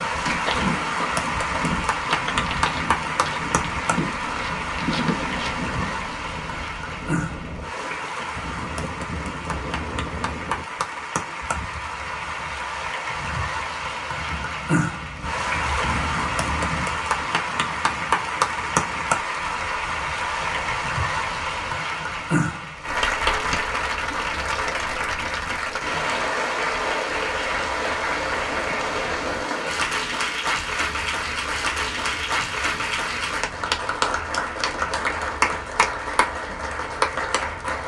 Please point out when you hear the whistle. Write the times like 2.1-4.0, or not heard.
not heard.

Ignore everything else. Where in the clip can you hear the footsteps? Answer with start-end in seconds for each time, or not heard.
0.2-5.9.